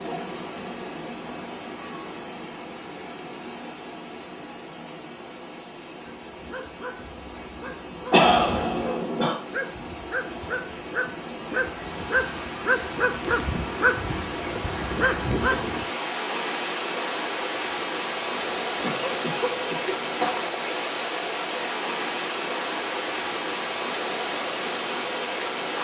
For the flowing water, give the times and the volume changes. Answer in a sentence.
The flowing water can be heard from 0.0 to 25.7 s, getting louder.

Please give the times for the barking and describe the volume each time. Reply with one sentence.
The barking can be heard from 6.0 to 15.8 s, getting louder.